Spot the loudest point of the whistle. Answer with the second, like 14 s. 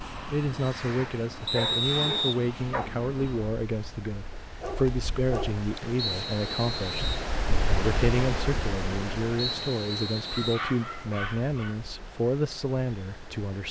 2 s.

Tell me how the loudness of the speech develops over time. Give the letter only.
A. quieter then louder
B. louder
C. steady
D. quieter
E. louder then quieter
C.